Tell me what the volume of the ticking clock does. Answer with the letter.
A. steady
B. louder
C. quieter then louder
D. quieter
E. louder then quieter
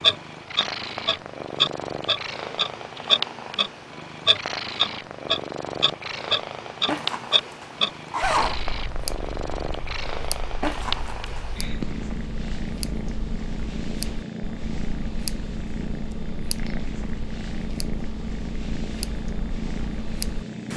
D.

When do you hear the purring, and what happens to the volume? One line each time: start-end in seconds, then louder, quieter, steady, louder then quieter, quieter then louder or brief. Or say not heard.
0.0-20.7 steady.